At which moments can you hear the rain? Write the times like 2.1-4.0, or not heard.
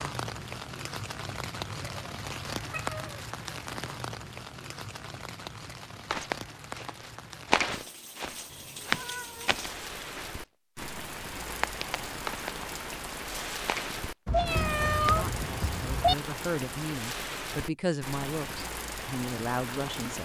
0.0-20.2.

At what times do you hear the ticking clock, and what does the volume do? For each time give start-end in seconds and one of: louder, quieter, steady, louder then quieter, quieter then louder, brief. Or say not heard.
not heard.